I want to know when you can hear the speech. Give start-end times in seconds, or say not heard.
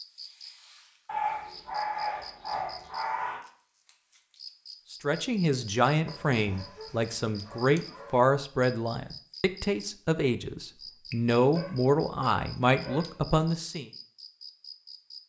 4.9-13.9.